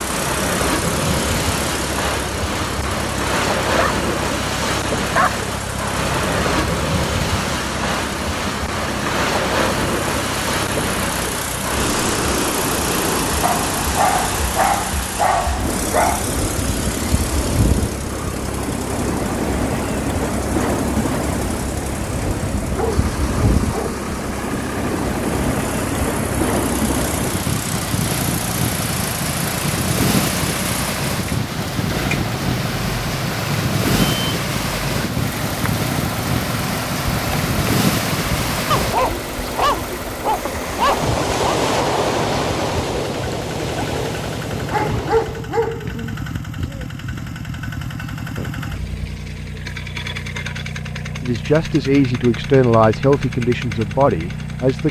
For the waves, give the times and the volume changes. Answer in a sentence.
The waves can be heard from 0.0 to 45.5 s, at a steady volume.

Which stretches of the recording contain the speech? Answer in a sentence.
You can hear the speech from 51.2 to 54.8 s.